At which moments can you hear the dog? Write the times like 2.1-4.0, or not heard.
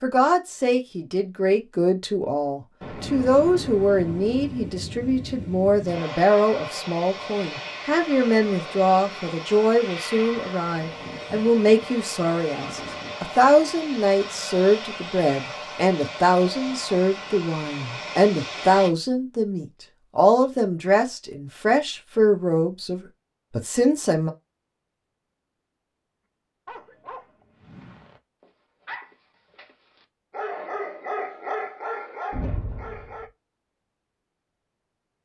26.6-33.3.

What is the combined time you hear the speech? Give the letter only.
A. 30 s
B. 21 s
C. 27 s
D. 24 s
D.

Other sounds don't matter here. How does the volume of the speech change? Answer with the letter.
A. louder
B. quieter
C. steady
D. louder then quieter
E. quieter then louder
C.